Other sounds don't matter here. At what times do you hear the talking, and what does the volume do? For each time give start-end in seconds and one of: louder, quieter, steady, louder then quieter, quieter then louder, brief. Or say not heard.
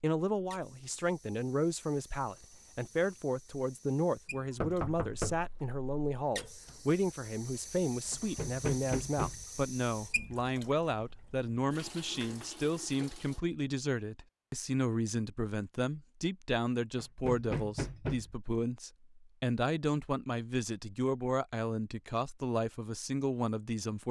0.0-24.0 steady.